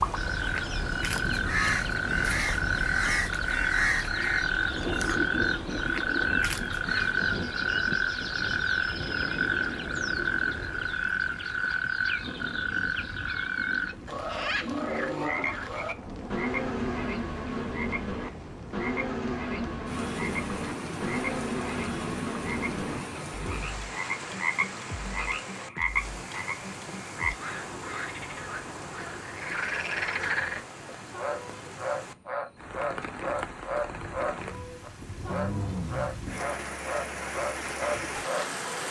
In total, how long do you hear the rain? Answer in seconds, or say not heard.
39 s.